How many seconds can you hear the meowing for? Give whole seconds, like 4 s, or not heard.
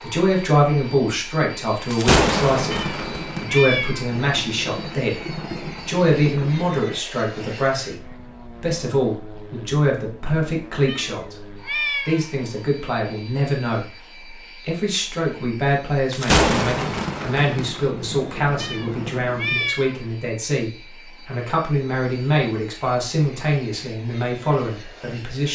4 s.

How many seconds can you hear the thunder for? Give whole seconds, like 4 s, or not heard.
8 s.